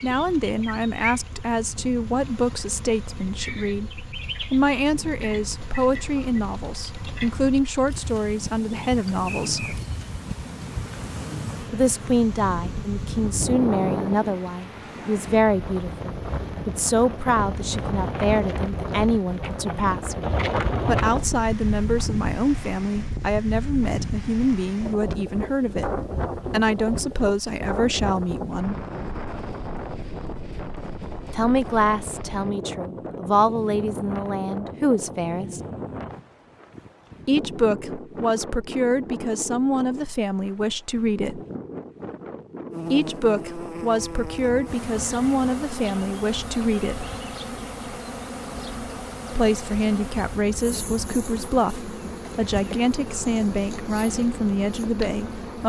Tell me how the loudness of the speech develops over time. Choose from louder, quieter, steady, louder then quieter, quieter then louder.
steady.